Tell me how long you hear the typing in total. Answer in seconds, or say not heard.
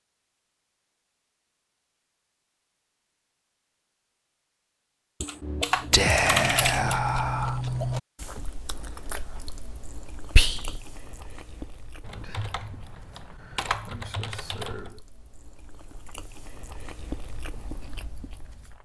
5 s.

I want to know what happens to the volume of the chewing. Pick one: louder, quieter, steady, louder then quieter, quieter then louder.
quieter then louder.